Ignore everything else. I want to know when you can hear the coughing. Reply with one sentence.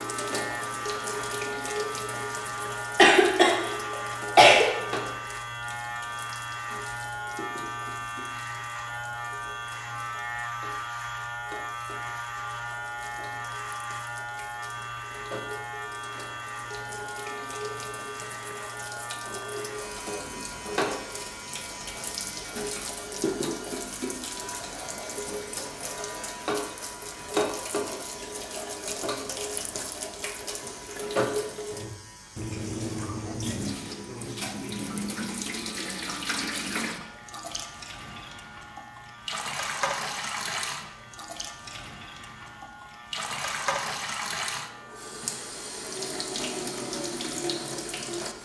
You can hear the coughing from 3.0 to 4.7 s.